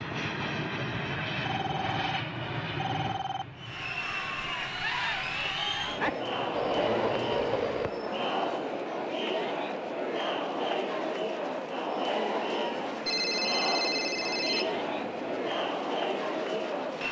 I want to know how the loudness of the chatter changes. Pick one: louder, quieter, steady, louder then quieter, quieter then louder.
steady.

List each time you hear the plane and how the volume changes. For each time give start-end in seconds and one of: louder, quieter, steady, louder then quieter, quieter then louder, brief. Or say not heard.
0.0-17.0 quieter.